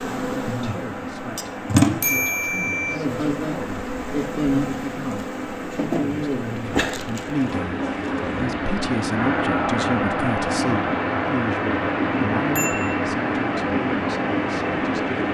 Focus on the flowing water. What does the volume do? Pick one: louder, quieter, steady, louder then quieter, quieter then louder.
louder.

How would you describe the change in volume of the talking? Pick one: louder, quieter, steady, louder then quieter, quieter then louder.
louder then quieter.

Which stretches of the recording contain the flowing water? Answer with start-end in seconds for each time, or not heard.
0.0-15.2.